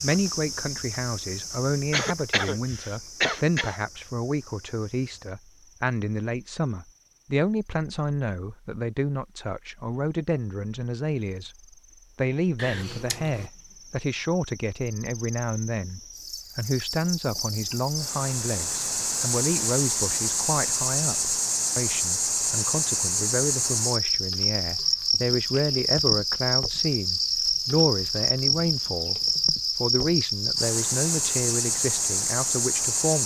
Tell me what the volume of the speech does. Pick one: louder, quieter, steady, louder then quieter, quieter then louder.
steady.